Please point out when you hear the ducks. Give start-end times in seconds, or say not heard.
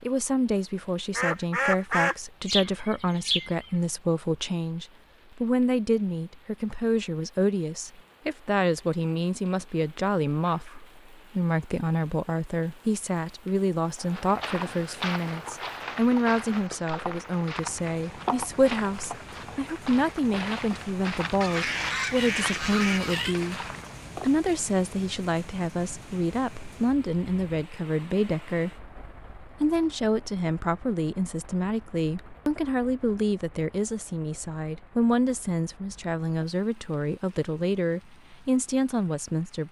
1.1-3.7, 21.4-23.4.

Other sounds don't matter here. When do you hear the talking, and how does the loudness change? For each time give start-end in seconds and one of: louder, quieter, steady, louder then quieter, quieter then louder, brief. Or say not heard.
0.0-23.6 steady
24.2-39.6 steady.